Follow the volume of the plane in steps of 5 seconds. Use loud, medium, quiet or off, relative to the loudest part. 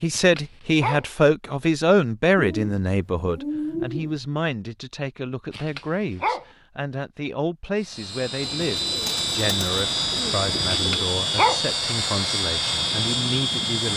off, loud, loud.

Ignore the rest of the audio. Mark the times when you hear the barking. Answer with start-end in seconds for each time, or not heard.
0.1-1.1, 5.5-6.5, 10.7-11.6.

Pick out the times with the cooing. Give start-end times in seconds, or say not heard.
2.4-4.2, 8.6-11.1.